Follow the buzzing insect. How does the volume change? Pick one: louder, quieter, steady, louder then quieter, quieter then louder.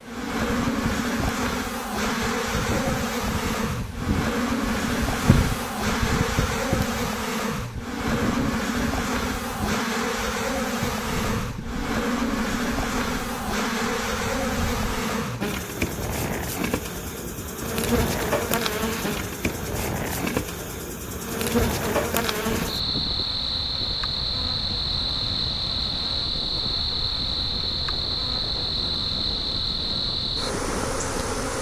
steady.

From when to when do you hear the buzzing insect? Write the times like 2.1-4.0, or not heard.
0.0-31.5.